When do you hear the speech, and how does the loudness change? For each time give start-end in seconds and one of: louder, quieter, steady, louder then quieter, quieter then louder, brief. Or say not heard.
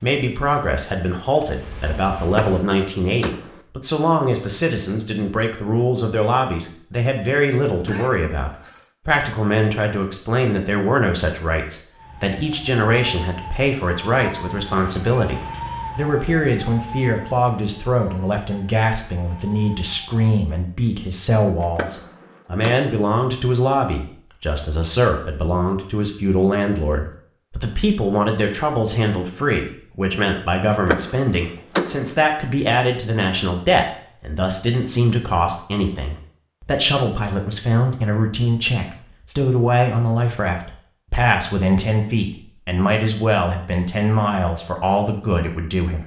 0.0-46.0 steady.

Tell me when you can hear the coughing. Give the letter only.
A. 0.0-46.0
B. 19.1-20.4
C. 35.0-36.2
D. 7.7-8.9
D.